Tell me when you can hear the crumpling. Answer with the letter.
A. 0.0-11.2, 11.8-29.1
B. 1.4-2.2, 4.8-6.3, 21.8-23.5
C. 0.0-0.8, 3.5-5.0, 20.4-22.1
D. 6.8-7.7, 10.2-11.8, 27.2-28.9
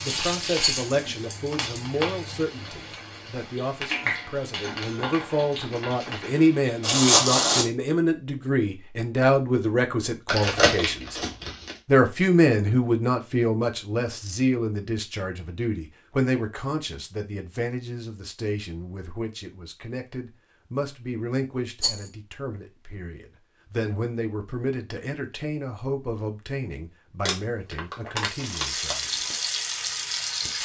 D.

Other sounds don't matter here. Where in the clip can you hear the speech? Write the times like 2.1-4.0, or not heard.
0.0-11.2, 11.8-29.1.